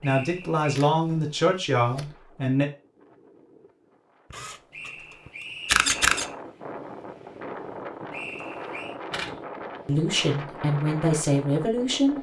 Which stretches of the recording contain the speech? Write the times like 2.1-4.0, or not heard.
0.0-2.6, 9.8-12.1.